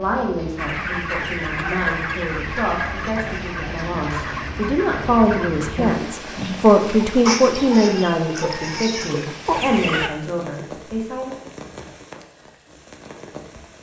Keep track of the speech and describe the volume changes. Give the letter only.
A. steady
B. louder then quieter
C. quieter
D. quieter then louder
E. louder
B.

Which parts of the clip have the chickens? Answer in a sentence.
You can hear the chickens from 0.6 to 10.1 s.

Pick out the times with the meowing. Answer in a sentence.
The meowing can't be heard in this clip.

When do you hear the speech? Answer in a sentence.
The speech can be heard from 0.0 to 11.3 s.